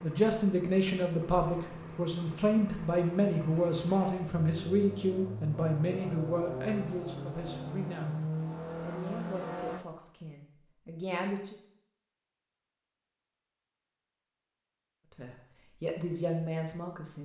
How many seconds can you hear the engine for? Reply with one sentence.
The engine can be heard for 10 seconds in total.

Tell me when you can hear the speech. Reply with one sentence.
The speech can be heard from 0.0 to 11.6 s and from 15.1 to 17.1 s.